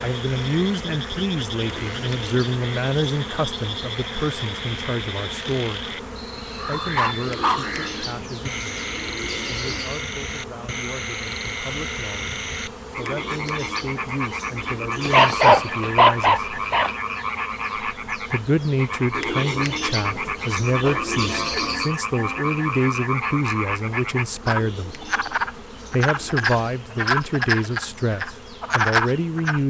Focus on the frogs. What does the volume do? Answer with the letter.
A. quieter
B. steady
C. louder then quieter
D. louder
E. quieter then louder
D.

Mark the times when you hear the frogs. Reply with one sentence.
You can hear the frogs from 0.0 to 29.6 s.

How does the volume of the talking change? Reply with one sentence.
The loudness of the talking goes down, then up.